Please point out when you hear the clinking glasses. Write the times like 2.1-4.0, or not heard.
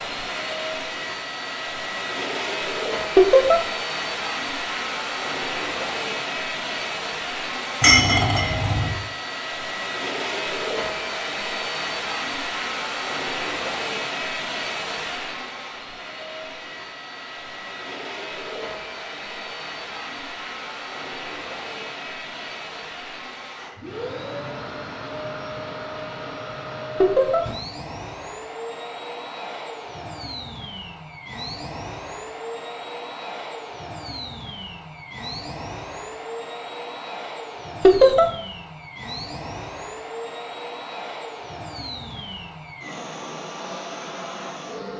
7.8-8.9.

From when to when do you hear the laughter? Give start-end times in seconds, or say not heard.
3.1-3.6, 27.0-27.4, 37.8-38.2.